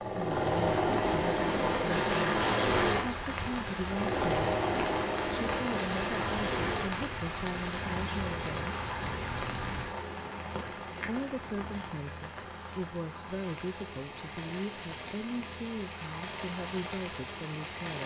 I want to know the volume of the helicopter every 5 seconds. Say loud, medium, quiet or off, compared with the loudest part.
loud, medium, quiet, quiet.